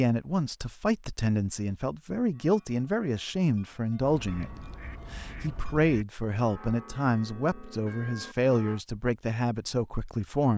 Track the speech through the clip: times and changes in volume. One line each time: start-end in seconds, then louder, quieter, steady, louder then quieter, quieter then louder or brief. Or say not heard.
0.0-10.5 steady.